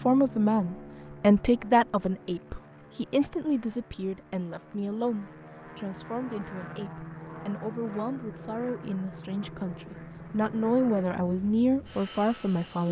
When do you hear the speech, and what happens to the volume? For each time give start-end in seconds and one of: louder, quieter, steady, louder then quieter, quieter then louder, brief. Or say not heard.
0.1-12.8 quieter then louder.